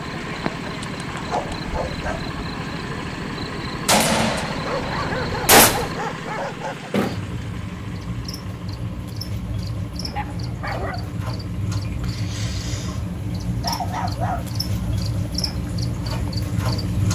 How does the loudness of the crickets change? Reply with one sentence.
The volume of the crickets goes up.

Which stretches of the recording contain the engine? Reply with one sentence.
The engine can be heard from 0.0 to 17.1 s.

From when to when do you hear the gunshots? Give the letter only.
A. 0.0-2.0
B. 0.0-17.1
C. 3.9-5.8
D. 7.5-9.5
C.